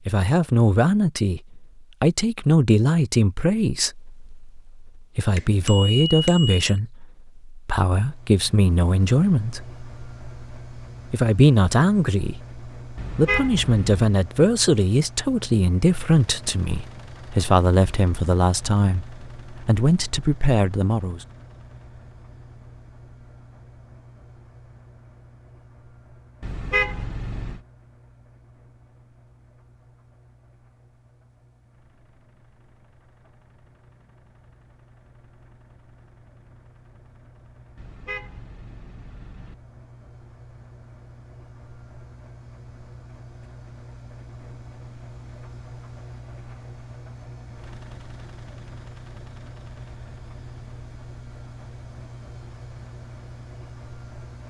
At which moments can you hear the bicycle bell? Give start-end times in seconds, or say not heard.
5.3-6.6.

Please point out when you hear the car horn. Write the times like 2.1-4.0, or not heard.
12.9-14.2, 26.4-27.6, 37.8-39.5.